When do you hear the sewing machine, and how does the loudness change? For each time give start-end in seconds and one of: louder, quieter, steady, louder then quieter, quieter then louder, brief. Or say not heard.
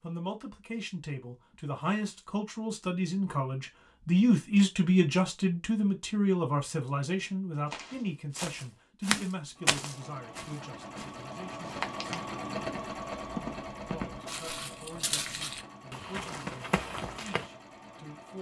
9.3-18.3 louder then quieter.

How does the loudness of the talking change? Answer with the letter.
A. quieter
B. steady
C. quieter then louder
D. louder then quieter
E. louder
D.